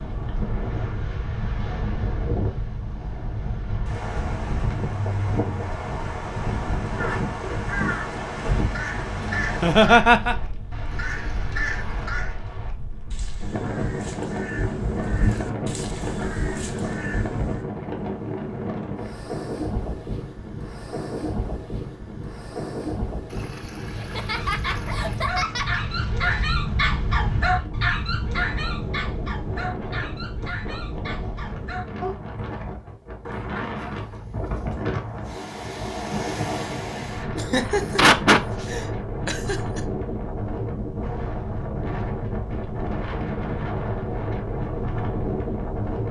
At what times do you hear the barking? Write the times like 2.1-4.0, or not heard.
24.4-32.1.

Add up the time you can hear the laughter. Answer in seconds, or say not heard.
5 s.